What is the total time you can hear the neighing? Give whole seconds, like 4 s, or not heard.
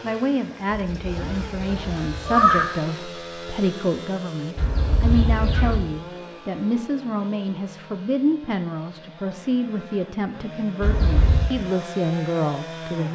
4 s.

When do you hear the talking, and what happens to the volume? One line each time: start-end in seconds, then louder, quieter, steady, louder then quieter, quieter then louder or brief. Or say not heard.
0.0-13.0 steady.